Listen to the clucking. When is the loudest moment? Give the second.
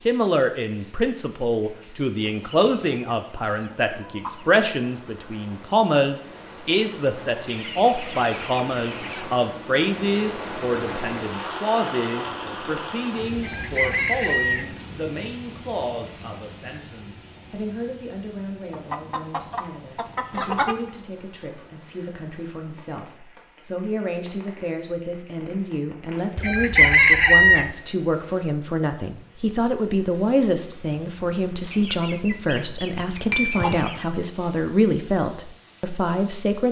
27 s.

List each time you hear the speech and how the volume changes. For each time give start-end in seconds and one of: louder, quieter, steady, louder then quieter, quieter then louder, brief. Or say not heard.
0.1-36.6 quieter then louder.